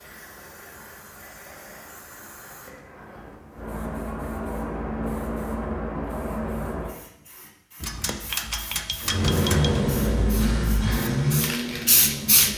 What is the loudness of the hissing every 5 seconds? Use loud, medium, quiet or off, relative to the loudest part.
medium, medium, loud.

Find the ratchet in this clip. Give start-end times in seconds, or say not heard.
7.8-9.8.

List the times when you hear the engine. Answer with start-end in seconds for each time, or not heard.
9.0-12.5.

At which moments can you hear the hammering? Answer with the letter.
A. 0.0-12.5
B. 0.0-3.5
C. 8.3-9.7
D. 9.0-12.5
C.